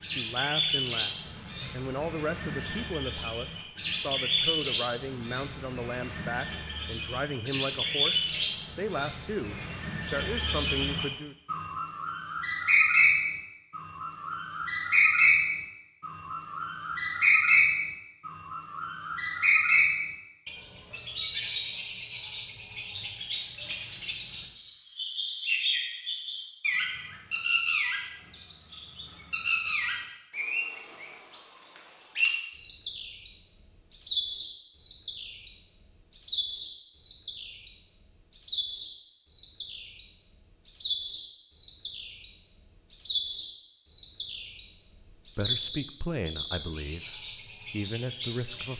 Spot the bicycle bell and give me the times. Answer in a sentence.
You can't hear the bicycle bell here.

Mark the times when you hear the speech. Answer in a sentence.
You can hear the speech from 0.0 to 11.3 s and from 45.4 to 48.7 s.